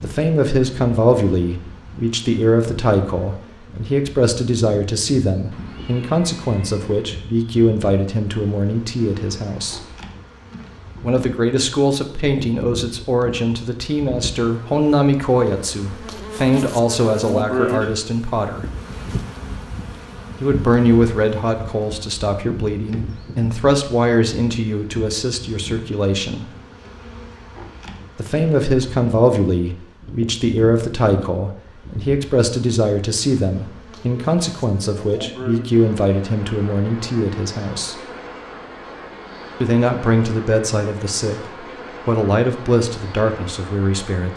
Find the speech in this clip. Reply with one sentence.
The speech can be heard from 0.0 to 9.8 s, from 11.0 to 18.6 s, from 20.4 to 26.6 s, from 28.1 to 38.0 s and from 39.6 to 44.3 s.